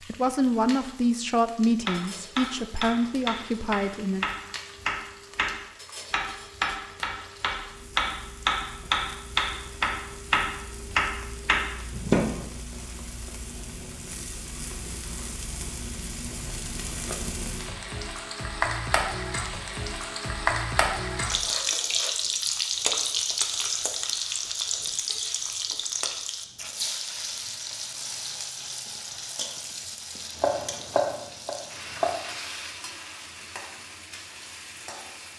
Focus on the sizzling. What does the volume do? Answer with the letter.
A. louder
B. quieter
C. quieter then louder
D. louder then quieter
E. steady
D.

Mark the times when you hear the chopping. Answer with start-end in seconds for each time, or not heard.
1.9-12.4, 30.4-32.1.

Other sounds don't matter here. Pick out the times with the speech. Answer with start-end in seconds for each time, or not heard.
0.1-4.2.